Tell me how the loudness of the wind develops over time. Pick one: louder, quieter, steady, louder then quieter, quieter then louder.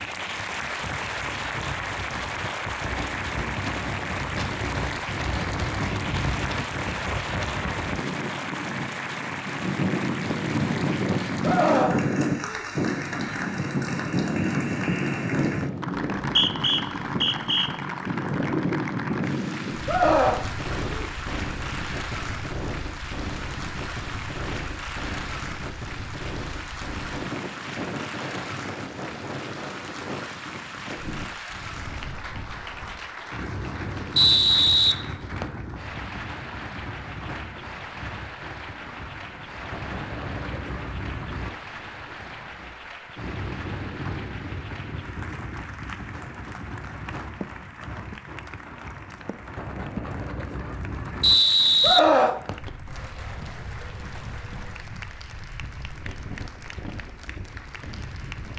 quieter.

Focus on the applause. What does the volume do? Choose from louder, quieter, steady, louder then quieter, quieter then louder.
quieter.